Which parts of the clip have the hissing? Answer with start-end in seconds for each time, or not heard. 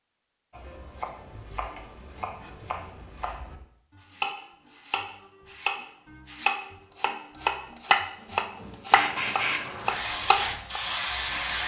8.9-11.6.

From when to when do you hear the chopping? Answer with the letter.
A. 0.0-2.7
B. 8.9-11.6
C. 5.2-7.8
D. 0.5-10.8
D.